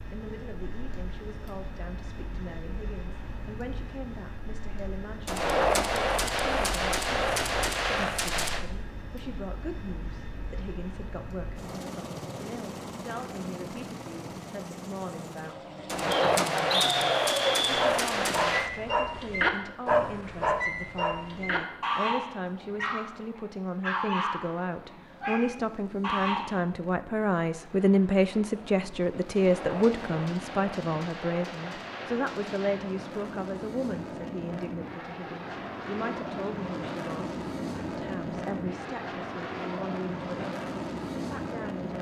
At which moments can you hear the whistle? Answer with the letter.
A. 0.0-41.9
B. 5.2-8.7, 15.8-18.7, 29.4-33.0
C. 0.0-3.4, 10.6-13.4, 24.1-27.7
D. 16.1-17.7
D.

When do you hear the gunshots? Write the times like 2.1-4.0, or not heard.
5.2-8.7, 15.8-18.7, 29.4-33.0.